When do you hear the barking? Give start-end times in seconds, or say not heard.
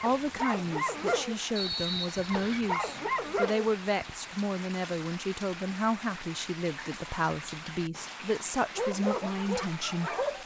0.0-4.2, 8.8-10.4.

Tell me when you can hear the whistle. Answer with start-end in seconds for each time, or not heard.
1.6-2.7.